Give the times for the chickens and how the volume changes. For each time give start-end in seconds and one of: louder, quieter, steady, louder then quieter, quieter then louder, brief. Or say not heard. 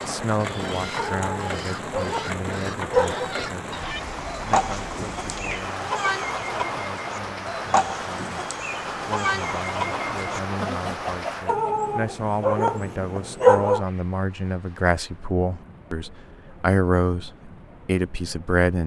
0.0-11.8 louder.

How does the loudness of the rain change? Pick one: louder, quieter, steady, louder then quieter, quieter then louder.
quieter.